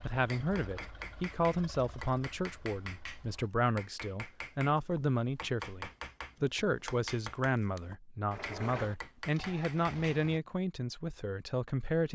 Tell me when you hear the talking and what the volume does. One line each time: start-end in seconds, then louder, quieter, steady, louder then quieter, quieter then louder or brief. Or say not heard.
0.0-12.1 steady.